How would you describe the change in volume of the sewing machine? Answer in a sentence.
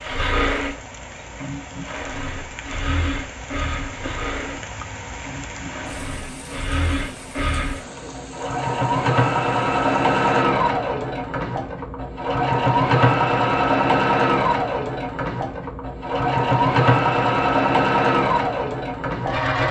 The loudness of the sewing machine goes up.